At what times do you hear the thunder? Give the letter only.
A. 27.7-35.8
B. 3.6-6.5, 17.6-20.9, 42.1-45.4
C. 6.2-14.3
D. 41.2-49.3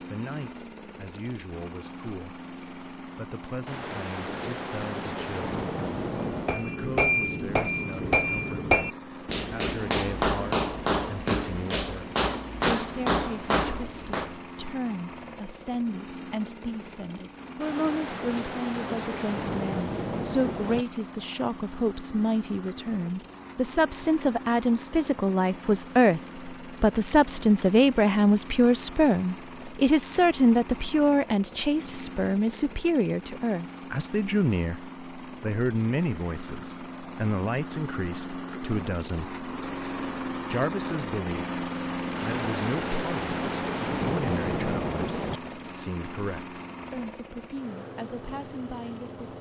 B.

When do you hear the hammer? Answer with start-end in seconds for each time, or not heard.
6.2-14.3.